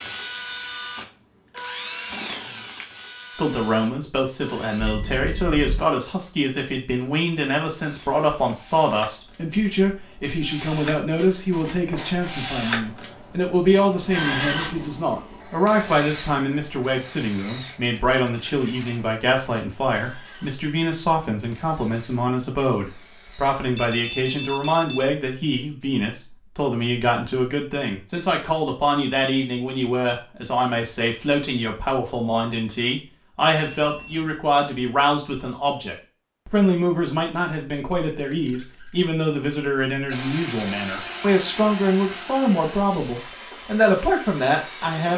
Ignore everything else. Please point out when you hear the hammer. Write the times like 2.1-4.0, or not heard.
not heard.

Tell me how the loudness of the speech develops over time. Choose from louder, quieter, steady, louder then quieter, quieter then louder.
steady.